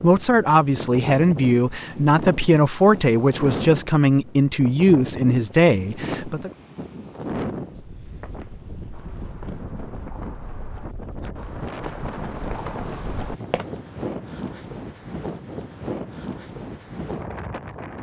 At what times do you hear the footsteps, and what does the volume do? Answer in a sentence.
The footsteps can be heard from 8.1 to 13.7 s, getting louder.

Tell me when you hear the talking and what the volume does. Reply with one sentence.
The talking can be heard from 0.0 to 6.5 s, at a steady volume.